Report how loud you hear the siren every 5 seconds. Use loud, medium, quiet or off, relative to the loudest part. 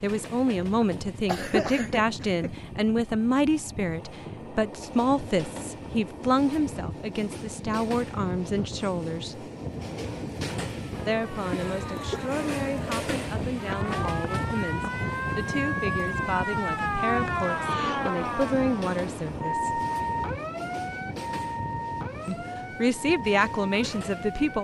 off, off, medium, loud, medium.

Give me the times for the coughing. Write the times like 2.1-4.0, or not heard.
1.2-2.6, 11.8-12.2, 17.2-18.1.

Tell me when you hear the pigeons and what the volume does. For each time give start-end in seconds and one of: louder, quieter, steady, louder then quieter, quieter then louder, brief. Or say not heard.
not heard.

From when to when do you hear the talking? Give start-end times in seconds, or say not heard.
0.0-9.5, 11.1-19.8, 22.2-24.6.